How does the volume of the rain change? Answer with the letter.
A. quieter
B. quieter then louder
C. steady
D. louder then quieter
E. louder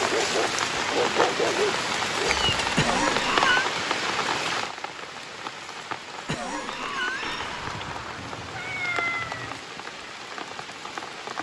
A.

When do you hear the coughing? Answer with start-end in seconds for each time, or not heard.
2.8-3.6, 6.2-7.5.